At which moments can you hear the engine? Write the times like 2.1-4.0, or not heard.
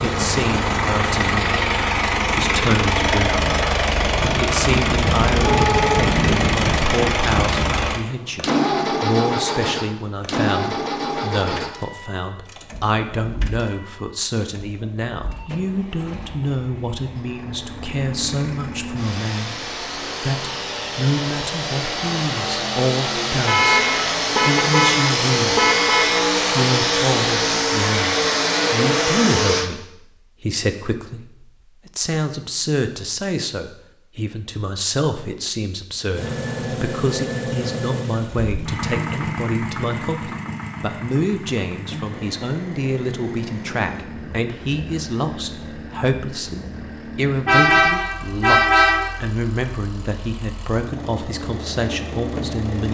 0.0-29.7, 36.1-52.8.